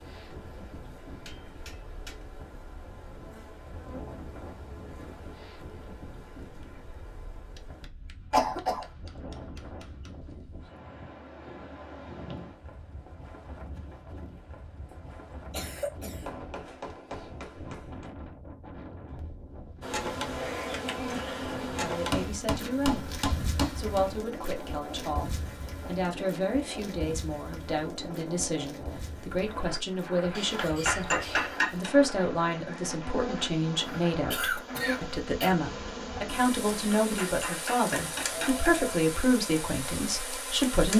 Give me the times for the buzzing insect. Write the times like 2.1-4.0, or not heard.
0.0-7.9, 19.8-40.9.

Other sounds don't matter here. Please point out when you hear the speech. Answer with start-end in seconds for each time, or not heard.
21.8-40.9.